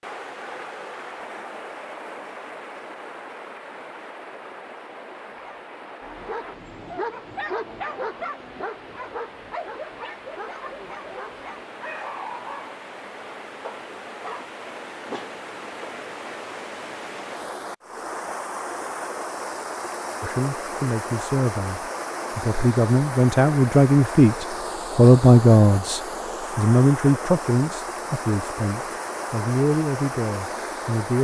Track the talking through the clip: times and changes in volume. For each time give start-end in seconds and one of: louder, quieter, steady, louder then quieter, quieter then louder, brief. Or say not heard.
20.2-31.2 louder then quieter.